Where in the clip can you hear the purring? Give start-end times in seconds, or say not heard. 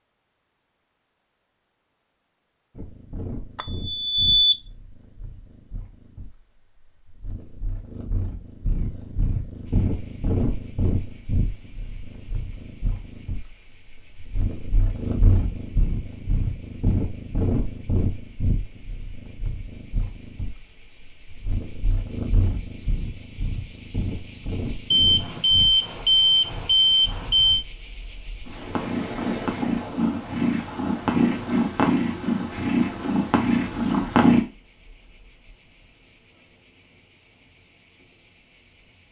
2.8-34.4.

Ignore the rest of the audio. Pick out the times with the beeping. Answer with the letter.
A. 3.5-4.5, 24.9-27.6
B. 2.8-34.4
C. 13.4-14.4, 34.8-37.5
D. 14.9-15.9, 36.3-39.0
A.